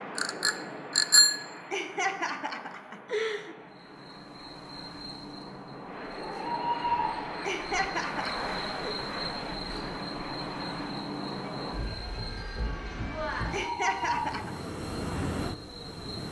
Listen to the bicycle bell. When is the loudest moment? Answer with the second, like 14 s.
1 s.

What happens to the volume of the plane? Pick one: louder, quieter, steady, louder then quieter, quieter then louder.
louder.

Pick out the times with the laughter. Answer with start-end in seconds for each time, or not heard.
1.7-3.5, 7.5-8.9, 13.5-14.6.